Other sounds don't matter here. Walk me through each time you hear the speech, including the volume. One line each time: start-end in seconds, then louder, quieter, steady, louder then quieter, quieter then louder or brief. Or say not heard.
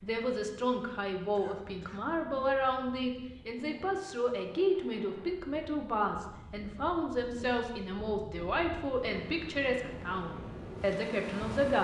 0.0-11.8 steady.